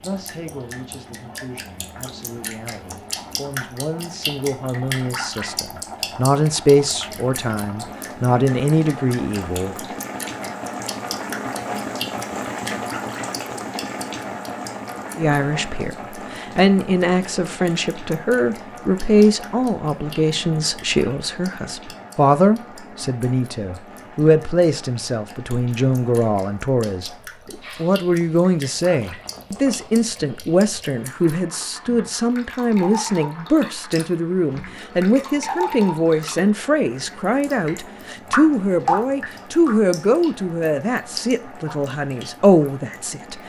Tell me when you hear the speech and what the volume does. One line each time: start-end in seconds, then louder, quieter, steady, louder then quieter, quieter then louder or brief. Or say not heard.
0.0-9.8 louder
15.2-43.4 steady.